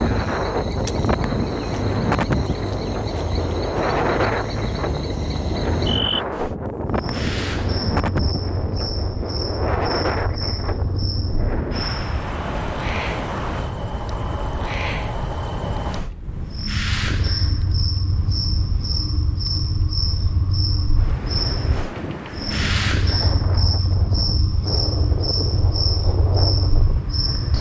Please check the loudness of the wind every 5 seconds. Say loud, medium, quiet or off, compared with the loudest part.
loud, loud, medium, quiet, medium, medium.